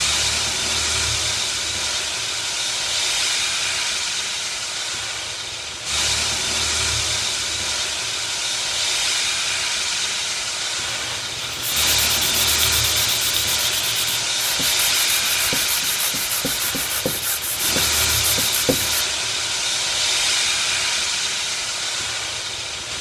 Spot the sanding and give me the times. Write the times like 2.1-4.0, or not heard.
10.8-19.1.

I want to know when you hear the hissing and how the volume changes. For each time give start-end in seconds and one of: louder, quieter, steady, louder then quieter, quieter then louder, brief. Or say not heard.
0.0-22.9 steady.